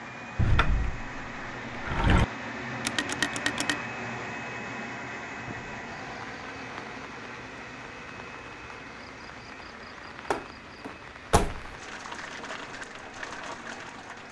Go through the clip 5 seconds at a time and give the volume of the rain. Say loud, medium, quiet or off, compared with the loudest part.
off, medium, loud.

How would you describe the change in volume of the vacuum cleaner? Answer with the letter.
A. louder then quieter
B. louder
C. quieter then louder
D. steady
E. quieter
E.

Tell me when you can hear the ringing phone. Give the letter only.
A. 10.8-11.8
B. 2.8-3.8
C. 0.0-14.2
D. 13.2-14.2
B.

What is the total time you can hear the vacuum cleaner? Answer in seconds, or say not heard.
14 s.